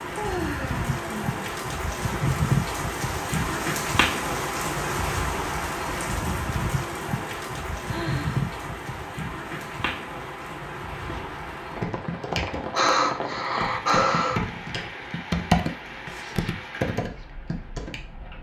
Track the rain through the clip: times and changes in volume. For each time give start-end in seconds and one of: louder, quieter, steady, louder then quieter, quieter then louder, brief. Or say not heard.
0.0-18.3 quieter.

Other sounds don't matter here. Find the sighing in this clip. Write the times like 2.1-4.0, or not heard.
0.1-1.4, 7.8-8.6, 12.7-14.4.